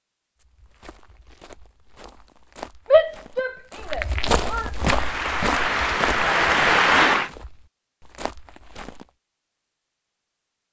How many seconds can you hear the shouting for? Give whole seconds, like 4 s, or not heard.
2 s.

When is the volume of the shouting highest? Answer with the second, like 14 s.
3 s.